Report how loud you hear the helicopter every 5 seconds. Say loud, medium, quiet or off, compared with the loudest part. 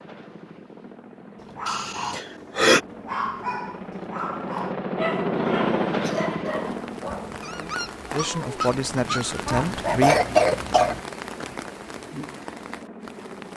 medium, loud, quiet.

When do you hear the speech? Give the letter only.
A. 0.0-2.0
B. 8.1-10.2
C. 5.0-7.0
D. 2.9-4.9
B.